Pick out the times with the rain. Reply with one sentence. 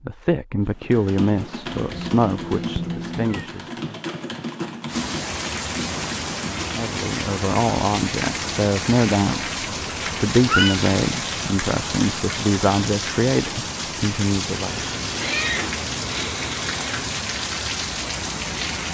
The rain can be heard from 4.8 to 18.8 s.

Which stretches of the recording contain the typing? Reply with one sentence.
You can hear the typing from 0.7 to 6.7 s.